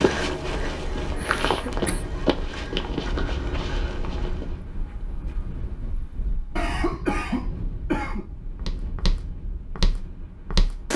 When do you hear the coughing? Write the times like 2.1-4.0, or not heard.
1.1-2.0, 6.5-8.2.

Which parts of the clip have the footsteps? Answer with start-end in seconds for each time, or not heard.
0.0-4.6, 8.6-10.9.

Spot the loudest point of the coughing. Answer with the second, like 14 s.
7 s.